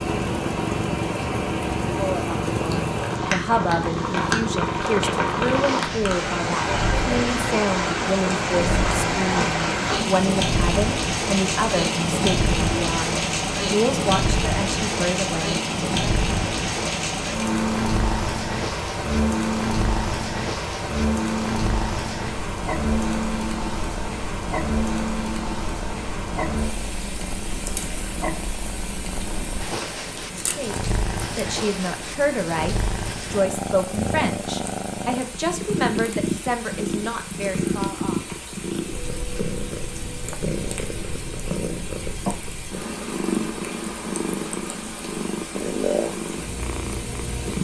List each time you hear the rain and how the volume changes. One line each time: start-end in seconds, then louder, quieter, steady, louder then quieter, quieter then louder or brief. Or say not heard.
0.0-47.5 quieter.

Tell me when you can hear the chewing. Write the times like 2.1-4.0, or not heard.
not heard.